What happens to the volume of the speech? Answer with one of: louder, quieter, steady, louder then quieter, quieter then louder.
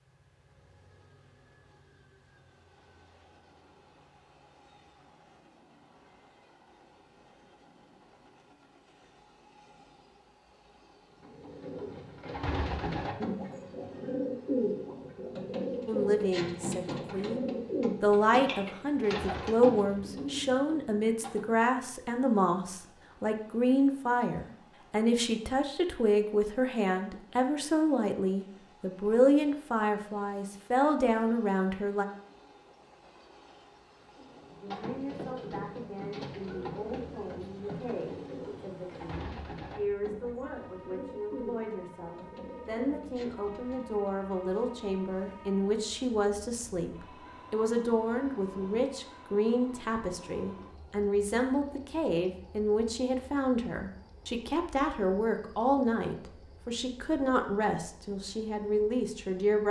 quieter then louder.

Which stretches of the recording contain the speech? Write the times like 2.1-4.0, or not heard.
15.8-32.0, 34.6-59.6.